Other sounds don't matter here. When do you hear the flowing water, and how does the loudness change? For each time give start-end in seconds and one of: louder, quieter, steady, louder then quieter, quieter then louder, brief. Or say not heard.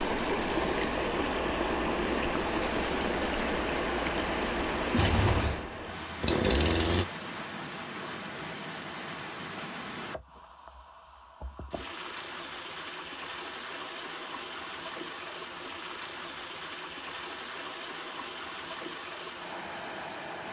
0.0-20.4 quieter.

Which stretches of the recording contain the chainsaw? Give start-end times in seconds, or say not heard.
5.0-7.0.